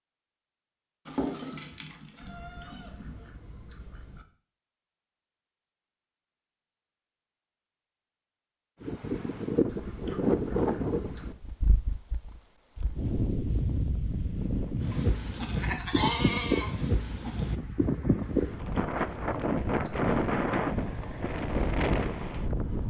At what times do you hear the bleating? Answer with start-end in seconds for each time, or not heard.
1.1-3.2, 14.9-16.8.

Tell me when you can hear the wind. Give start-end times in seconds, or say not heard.
8.8-22.8.